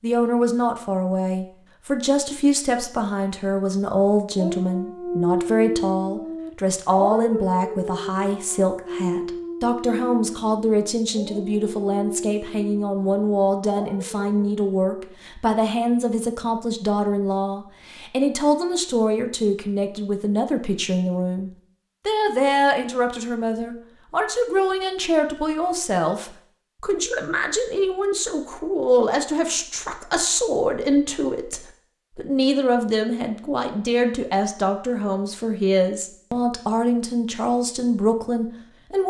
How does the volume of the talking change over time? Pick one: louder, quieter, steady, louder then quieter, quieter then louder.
steady.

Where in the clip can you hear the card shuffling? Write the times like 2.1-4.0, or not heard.
not heard.